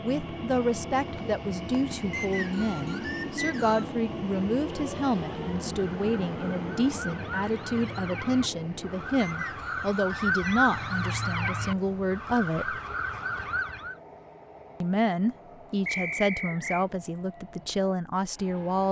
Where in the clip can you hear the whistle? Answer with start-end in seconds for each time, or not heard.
2.1-3.9, 9.2-10.8, 15.8-16.9.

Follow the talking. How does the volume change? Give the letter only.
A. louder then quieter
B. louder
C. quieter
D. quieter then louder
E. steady
E.